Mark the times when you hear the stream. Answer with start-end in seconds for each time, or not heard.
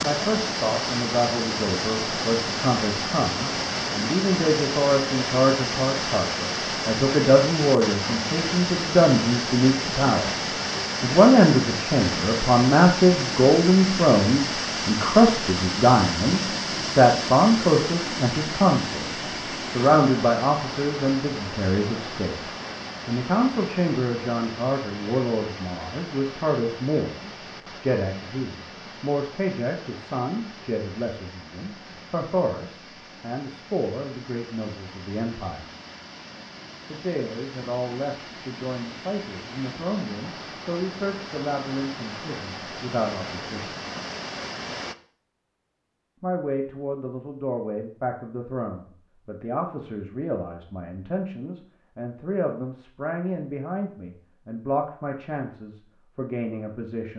0.0-45.0.